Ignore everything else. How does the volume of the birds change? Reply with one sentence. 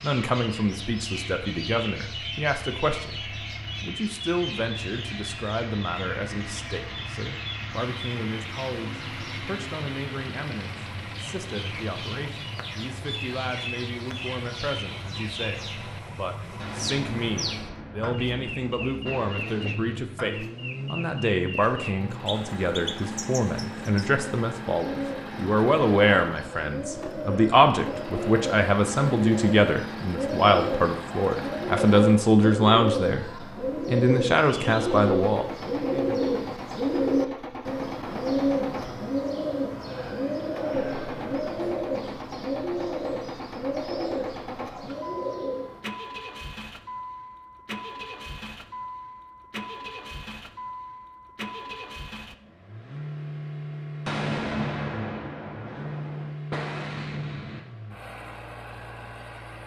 The volume of the birds goes up.